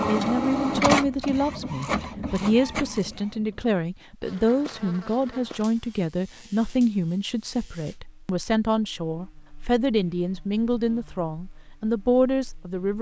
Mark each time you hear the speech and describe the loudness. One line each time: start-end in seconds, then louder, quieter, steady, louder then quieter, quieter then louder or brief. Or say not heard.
0.1-12.9 steady.